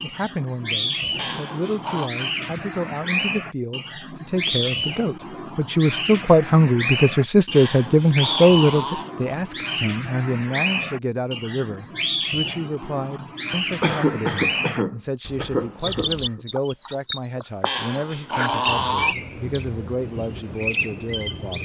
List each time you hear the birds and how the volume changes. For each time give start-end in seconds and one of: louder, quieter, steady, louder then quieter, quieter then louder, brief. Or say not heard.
0.0-21.5 steady.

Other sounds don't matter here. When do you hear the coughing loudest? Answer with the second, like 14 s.
14 s.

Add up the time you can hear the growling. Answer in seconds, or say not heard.
4 s.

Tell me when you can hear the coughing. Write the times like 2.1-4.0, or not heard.
13.8-16.4.